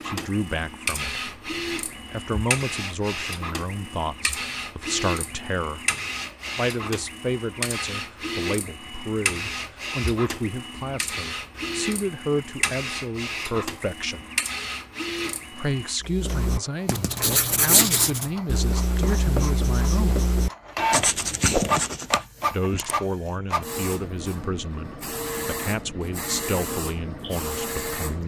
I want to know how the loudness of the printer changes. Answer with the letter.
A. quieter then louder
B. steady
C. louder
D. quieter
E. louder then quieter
B.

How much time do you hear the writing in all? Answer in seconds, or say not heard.
6 s.